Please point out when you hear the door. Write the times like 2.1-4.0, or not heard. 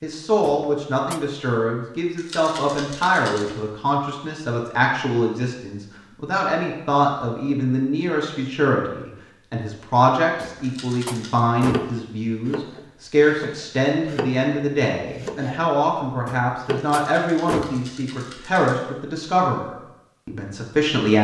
0.5-1.2, 10.4-11.9, 16.2-17.8.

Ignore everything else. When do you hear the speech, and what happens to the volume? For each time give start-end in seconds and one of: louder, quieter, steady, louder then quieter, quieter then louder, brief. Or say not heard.
0.0-21.1 steady.